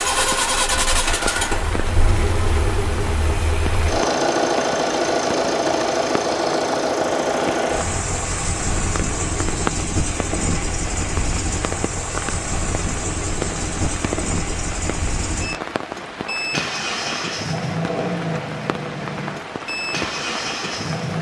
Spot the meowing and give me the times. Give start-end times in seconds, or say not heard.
not heard.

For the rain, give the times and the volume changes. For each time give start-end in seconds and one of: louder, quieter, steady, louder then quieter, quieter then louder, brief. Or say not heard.
0.0-21.1 steady.